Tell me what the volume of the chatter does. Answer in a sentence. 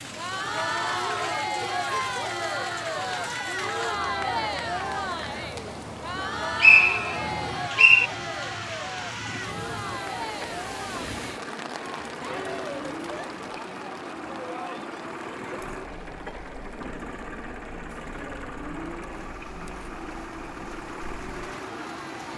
The volume of the chatter goes down.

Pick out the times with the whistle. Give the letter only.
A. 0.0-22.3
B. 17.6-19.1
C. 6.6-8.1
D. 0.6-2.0
C.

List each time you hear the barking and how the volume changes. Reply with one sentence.
You can't hear the barking here.